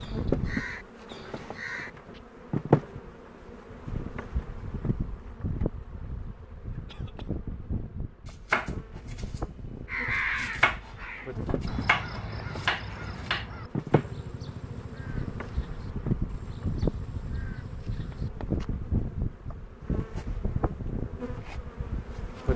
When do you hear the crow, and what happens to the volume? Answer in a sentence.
You can hear the crow briefly from 0.0 to 2.2 s; and from 9.8 to 18.6 s, getting quieter.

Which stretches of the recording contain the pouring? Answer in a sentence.
The pouring can't be heard in this clip.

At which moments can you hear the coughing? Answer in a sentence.
You can hear the coughing from 6.8 to 7.3 s.